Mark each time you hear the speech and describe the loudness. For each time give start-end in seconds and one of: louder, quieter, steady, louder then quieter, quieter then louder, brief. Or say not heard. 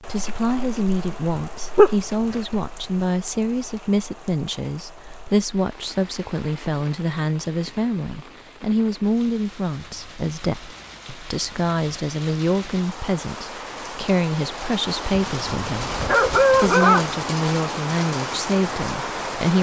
0.0-19.5 steady.